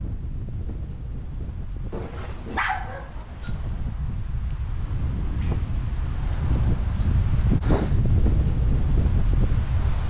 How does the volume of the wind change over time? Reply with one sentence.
The loudness of the wind goes up.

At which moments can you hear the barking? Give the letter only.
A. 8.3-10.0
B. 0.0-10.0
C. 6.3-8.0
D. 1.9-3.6
D.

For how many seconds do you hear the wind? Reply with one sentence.
The wind can be heard for 10 seconds in total.